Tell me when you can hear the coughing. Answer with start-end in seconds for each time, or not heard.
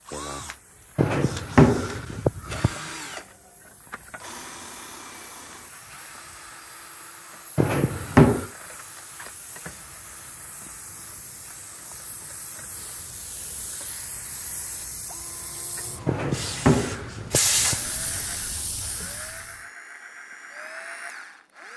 not heard.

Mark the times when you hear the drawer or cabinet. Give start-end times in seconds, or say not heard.
0.9-2.8, 7.5-8.4, 16.1-17.8.